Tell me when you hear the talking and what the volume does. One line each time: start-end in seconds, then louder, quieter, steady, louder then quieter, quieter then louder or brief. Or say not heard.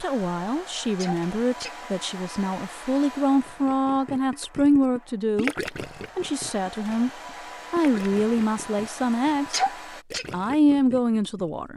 0.0-5.5 louder
6.2-7.1 brief
7.7-9.6 brief
10.3-11.7 brief.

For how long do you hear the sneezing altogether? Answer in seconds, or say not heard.
2 s.